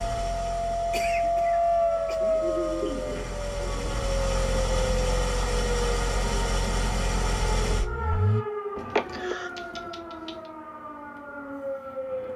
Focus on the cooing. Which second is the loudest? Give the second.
3 s.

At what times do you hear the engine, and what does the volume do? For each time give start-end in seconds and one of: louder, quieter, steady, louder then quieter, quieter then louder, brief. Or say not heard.
0.0-8.4 louder.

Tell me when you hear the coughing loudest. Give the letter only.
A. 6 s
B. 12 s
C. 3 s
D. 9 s
D.